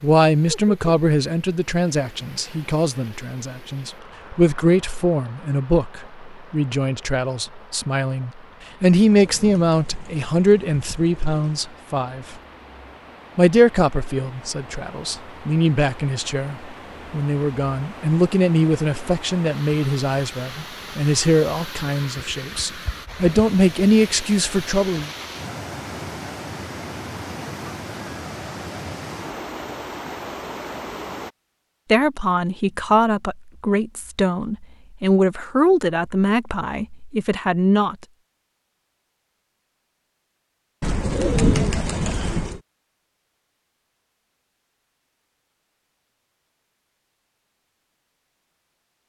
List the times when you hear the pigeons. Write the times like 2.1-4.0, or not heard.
9.1-11.7, 40.8-42.6.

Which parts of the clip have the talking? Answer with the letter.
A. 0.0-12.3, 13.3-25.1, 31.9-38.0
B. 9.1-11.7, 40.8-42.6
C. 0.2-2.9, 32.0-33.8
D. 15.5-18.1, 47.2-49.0
A.